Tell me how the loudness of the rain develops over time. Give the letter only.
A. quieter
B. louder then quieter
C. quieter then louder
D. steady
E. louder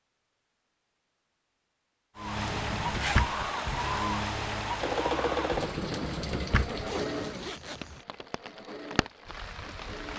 A.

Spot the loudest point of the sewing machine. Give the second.
5 s.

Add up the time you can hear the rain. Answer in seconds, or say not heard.
8 s.